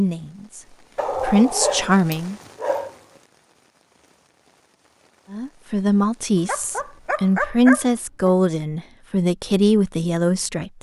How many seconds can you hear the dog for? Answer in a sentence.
The dog can be heard for 4 seconds in total.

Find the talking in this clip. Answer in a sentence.
You can hear the talking from 0.0 to 2.4 s and from 5.3 to 10.7 s.